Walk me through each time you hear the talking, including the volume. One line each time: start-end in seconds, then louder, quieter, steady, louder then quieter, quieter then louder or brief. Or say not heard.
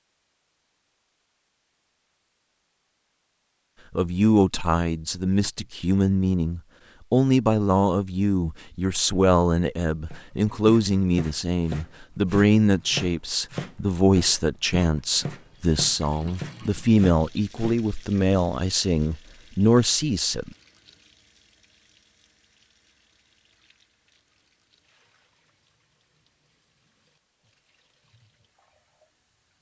4.0-20.5 steady.